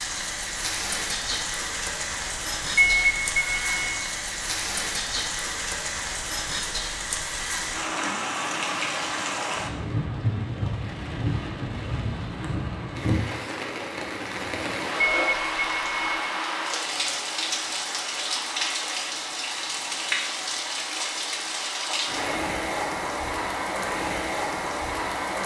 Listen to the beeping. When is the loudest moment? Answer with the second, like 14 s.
3 s.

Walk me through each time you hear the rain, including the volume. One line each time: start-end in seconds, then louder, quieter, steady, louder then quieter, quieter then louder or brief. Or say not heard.
0.0-25.4 steady.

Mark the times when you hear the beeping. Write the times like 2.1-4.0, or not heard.
2.8-4.0, 15.0-16.2.